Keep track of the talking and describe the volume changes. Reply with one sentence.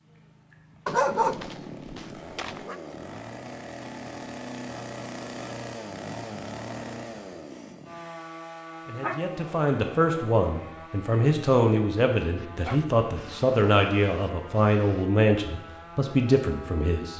The volume of the talking stays about the same.